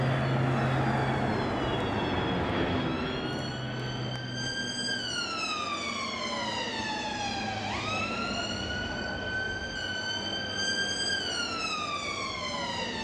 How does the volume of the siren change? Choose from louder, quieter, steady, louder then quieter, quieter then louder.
louder.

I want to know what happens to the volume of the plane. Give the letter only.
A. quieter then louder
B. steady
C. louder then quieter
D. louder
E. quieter
E.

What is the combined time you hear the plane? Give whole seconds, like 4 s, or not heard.
13 s.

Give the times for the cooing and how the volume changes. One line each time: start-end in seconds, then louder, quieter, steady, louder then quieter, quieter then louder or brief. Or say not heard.
not heard.